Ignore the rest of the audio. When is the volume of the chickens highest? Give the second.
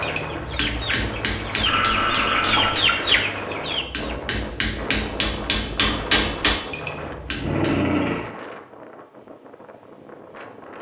3 s.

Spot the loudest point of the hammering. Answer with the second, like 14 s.
6 s.